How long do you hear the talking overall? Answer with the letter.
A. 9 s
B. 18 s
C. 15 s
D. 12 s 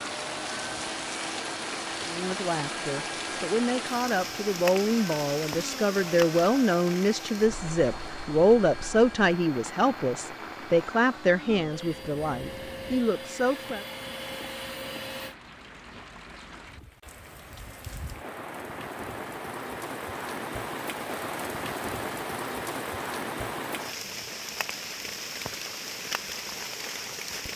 D.